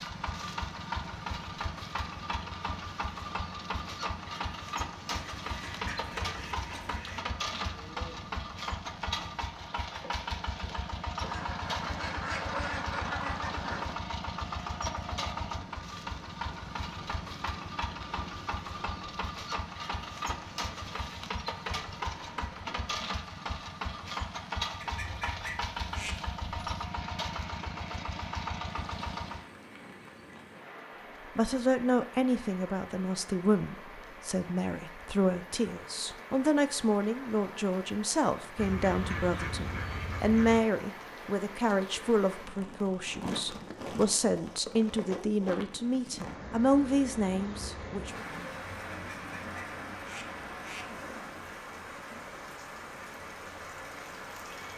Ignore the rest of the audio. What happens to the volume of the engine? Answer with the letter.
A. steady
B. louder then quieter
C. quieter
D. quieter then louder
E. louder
A.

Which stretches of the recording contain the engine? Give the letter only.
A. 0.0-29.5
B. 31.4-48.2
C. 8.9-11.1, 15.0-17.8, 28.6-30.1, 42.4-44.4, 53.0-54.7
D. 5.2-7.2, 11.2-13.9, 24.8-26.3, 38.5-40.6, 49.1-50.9
A.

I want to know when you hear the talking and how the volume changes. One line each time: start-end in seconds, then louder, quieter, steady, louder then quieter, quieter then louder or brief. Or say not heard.
31.4-48.2 steady.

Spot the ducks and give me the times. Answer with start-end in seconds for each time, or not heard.
5.2-7.2, 11.2-13.9, 24.8-26.3, 38.5-40.6, 49.1-50.9.